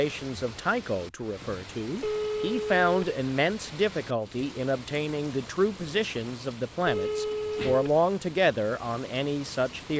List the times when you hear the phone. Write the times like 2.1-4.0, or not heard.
2.0-3.1, 6.8-8.0.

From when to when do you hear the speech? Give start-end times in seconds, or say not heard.
0.0-9.9.